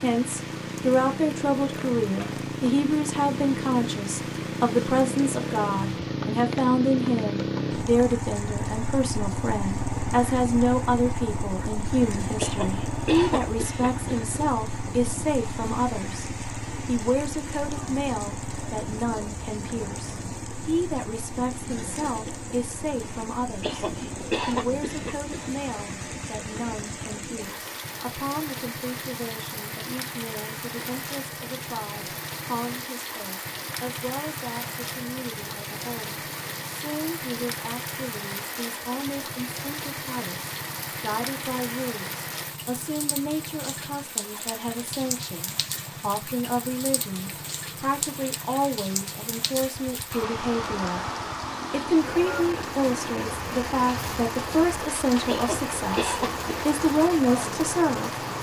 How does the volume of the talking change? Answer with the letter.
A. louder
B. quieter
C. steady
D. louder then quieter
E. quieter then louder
E.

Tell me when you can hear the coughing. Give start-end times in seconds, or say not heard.
12.3-14.2, 23.6-25.5, 55.2-56.8.